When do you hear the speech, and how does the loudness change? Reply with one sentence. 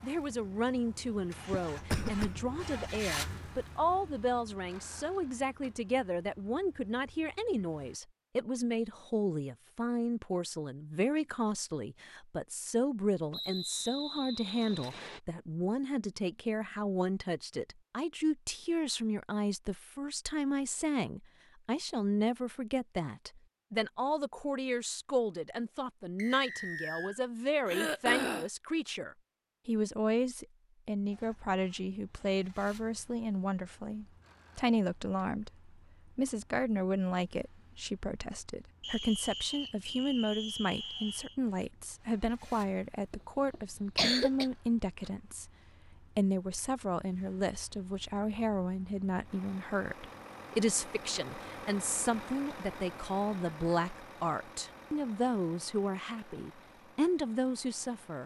The speech can be heard from 0.0 to 58.2 s, at a steady volume.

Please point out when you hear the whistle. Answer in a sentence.
The whistle can be heard from 13.3 to 15.2 s, from 26.1 to 27.2 s and from 38.8 to 41.4 s.